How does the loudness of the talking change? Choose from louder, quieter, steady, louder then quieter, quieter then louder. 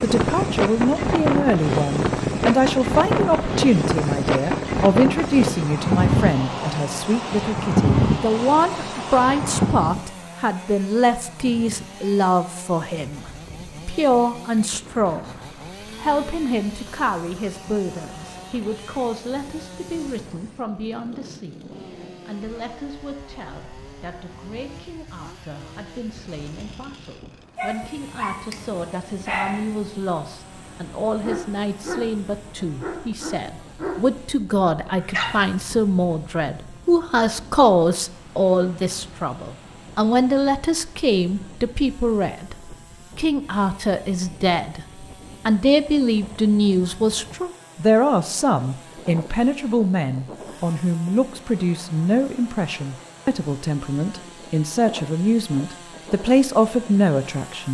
quieter then louder.